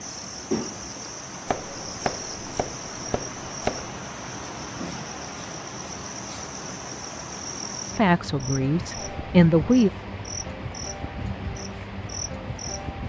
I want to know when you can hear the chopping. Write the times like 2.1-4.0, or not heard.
1.4-3.9.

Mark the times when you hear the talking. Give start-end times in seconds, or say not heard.
8.0-9.9.